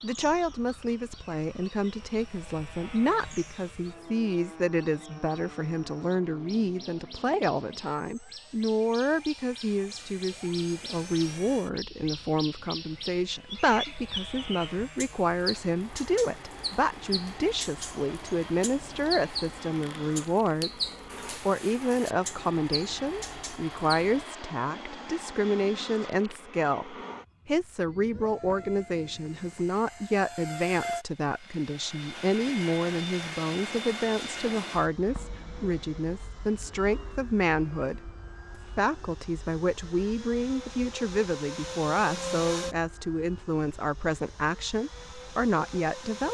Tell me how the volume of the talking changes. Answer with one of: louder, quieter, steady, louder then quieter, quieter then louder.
steady.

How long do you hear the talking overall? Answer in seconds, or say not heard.
46 s.